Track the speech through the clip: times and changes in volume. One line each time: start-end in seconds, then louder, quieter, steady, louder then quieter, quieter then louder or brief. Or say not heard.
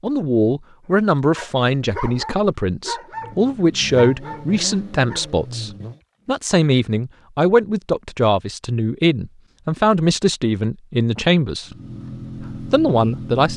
0.0-11.8 steady
12.4-13.5 brief.